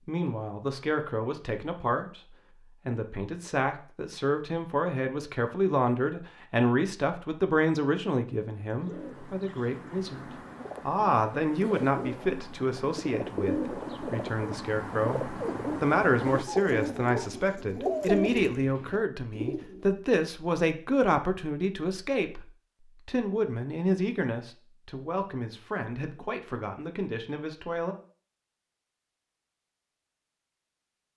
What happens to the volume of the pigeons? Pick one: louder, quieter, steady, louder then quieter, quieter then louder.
louder.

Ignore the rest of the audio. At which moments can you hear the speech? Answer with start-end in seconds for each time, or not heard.
0.1-27.9.